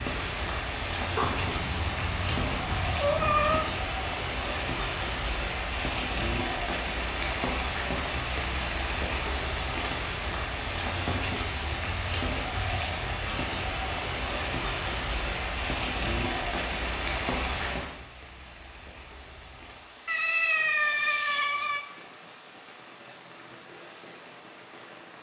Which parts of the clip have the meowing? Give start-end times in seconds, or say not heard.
1.1-3.7, 20.1-21.8.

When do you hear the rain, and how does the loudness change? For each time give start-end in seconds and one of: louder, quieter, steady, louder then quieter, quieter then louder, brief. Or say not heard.
0.0-25.1 quieter.